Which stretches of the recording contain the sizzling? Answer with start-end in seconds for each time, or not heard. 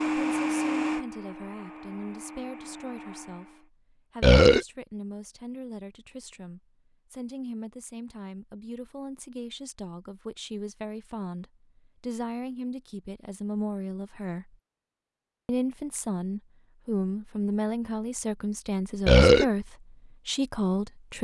not heard.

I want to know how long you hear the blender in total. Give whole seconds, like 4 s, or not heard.
4 s.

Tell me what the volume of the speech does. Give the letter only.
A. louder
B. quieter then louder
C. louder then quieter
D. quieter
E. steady
A.